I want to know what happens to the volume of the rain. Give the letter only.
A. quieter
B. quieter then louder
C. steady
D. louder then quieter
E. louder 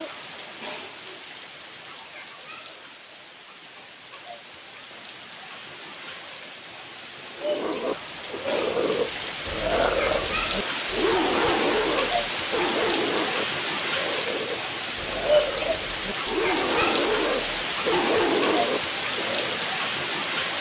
E.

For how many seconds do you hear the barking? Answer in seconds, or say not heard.
12 s.